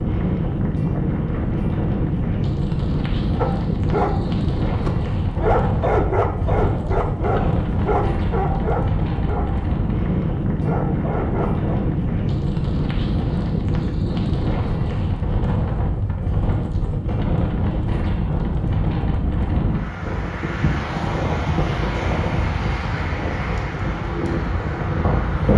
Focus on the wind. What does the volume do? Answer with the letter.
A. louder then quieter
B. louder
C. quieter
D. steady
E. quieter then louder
D.